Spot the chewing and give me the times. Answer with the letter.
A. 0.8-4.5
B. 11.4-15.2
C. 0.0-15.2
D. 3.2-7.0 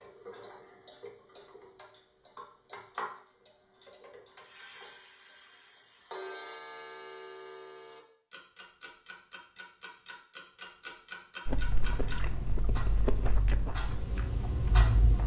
B.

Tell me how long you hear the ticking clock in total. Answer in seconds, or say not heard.
15 s.